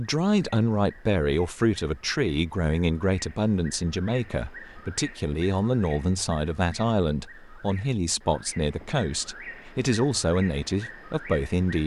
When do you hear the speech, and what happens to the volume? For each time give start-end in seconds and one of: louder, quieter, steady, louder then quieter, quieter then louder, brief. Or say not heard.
0.0-11.8 steady.